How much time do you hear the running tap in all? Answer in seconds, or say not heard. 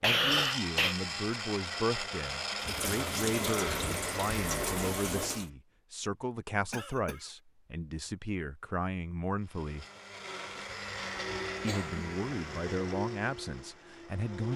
3 s.